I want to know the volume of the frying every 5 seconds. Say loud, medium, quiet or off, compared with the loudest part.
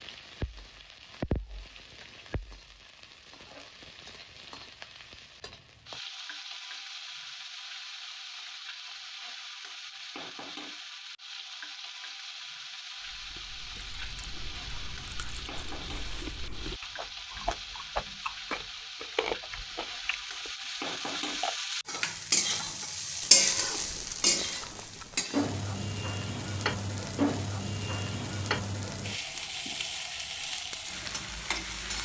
quiet, quiet, quiet, quiet, loud, medium, medium.